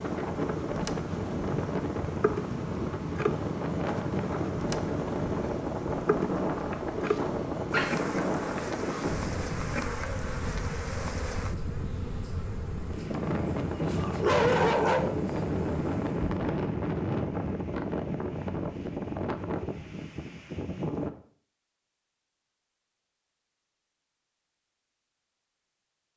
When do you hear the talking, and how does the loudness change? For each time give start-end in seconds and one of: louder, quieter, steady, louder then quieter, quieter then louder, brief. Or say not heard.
not heard.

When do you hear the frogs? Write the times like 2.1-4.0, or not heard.
not heard.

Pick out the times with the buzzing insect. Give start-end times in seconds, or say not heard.
0.0-16.5.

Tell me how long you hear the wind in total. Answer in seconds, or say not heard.
21 s.